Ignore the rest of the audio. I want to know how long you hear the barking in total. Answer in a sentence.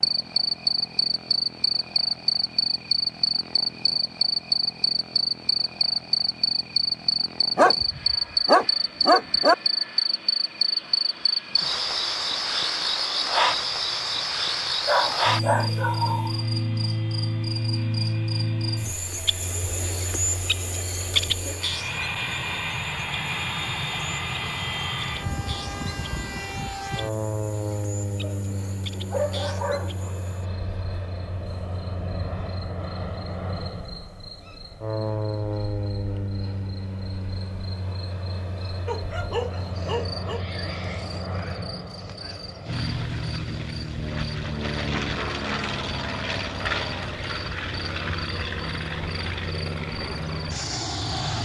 You can hear the barking for 7 seconds altogether.